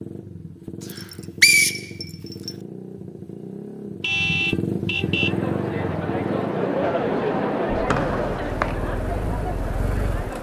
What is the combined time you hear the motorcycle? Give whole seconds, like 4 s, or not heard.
10 s.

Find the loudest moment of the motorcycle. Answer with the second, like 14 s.
5 s.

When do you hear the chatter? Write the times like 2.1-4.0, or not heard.
5.0-10.3.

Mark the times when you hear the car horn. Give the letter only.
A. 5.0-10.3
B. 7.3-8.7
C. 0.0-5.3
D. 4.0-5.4
D.